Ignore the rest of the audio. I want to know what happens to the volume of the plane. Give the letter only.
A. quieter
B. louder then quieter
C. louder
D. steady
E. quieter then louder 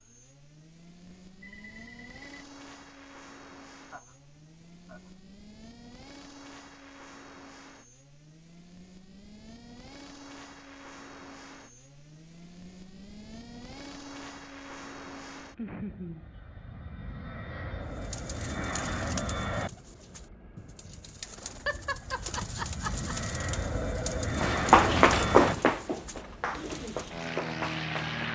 C.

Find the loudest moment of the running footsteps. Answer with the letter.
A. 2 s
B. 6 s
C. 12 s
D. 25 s
D.